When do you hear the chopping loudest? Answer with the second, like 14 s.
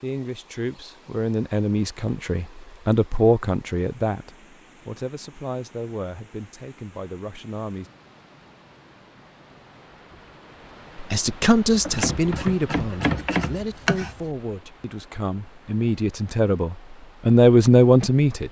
13 s.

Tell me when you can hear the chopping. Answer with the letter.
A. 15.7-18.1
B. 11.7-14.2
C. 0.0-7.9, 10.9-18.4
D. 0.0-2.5
B.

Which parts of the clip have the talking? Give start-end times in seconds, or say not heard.
0.0-7.9, 10.9-18.4.